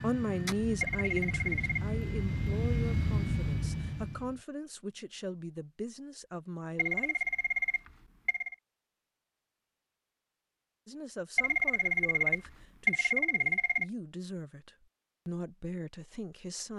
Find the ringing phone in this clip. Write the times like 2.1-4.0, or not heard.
0.8-1.9, 6.8-8.6, 11.3-13.8.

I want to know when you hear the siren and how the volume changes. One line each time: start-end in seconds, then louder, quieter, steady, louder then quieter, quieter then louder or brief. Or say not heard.
not heard.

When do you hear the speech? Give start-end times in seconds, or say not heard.
0.0-7.2, 10.8-16.7.